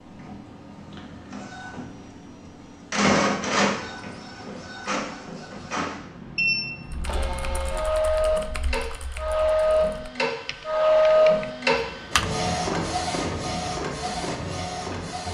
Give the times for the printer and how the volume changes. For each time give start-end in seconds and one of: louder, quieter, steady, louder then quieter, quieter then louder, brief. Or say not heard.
0.0-15.2 louder then quieter.